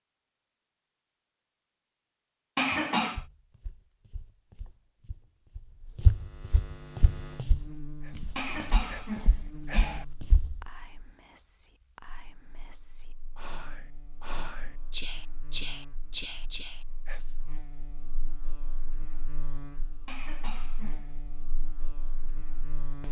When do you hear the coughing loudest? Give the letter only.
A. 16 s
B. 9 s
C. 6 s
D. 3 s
D.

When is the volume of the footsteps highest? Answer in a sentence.
The loudest moment of the footsteps is at 6 seconds.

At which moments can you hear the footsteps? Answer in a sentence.
The footsteps can be heard from 3.1 to 10.7 s.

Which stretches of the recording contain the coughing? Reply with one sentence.
You can hear the coughing from 2.5 to 3.2 s, from 8.3 to 10.1 s and from 20.1 to 21.1 s.